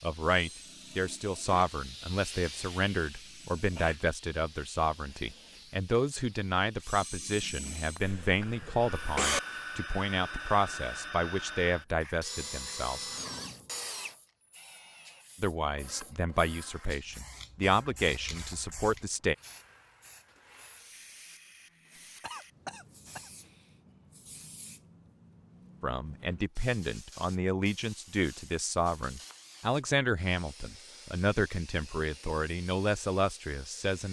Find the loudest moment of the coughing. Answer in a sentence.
The loudest moment of the coughing is at 9 seconds.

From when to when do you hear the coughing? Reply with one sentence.
You can hear the coughing from 8.0 to 9.4 s and from 22.2 to 23.2 s.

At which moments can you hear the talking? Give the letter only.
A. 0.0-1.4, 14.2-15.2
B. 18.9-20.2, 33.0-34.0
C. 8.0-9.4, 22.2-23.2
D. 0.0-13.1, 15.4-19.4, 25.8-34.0
D.